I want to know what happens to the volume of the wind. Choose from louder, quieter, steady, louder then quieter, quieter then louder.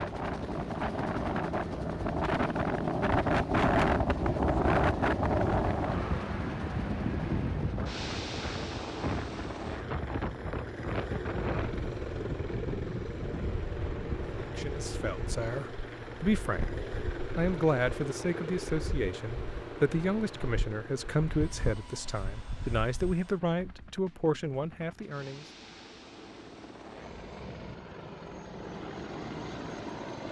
quieter.